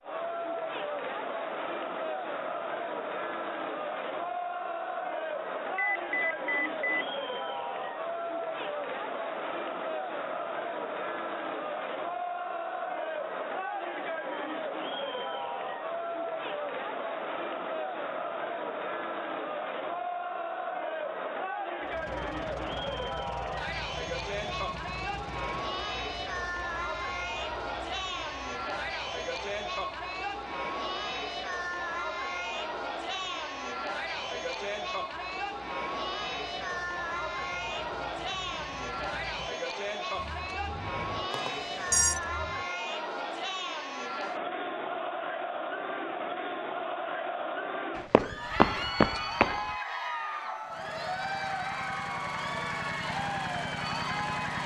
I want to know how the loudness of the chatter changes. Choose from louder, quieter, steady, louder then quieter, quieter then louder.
steady.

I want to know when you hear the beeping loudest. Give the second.
42 s.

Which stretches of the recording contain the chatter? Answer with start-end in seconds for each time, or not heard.
0.0-54.6.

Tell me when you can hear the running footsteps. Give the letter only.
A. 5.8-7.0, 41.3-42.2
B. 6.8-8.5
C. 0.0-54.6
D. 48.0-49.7
D.